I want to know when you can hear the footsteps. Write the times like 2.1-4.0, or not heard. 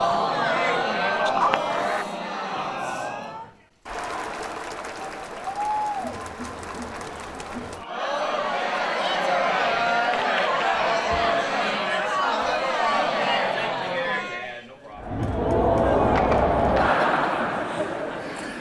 not heard.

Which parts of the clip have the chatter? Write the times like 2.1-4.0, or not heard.
0.0-18.5.